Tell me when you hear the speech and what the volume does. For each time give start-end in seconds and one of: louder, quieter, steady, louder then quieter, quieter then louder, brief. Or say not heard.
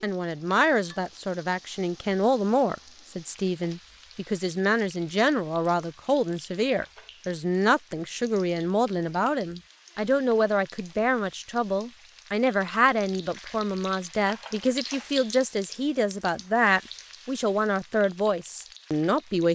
0.0-19.5 steady.